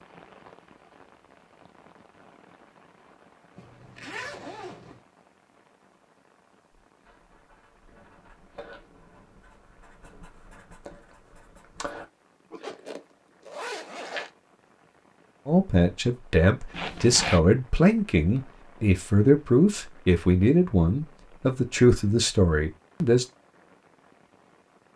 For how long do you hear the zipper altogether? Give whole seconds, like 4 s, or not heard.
4 s.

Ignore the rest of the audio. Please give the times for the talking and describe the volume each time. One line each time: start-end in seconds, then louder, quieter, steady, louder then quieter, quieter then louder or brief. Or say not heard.
15.4-23.2 steady.